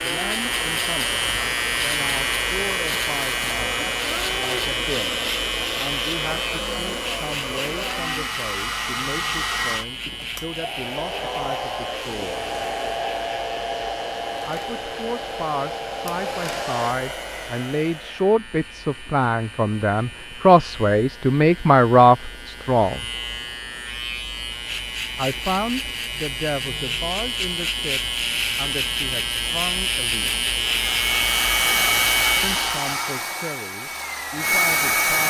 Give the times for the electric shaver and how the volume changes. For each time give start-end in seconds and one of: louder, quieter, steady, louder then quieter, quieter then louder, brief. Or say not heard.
0.0-32.9 quieter then louder.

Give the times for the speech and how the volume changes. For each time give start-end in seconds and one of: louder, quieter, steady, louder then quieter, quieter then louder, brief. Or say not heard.
0.0-12.4 steady
14.4-23.1 louder
25.1-30.4 quieter
32.4-35.2 brief.